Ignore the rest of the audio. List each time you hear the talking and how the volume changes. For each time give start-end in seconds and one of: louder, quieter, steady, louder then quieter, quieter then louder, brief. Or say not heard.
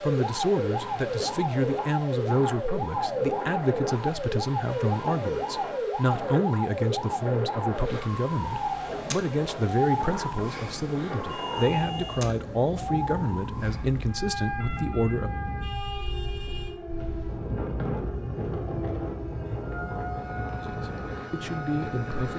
0.0-15.3 steady
20.6-22.3 brief.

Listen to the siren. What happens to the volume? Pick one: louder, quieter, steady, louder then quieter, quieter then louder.
quieter.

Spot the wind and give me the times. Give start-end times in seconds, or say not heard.
0.0-22.3.